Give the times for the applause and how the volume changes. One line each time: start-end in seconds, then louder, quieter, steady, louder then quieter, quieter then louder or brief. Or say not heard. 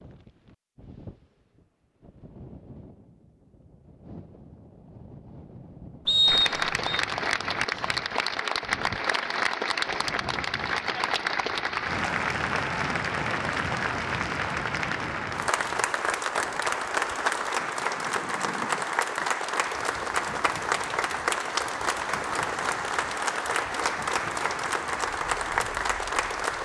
6.2-26.6 steady.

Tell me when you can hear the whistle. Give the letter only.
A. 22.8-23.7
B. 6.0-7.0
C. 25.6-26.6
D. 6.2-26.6
B.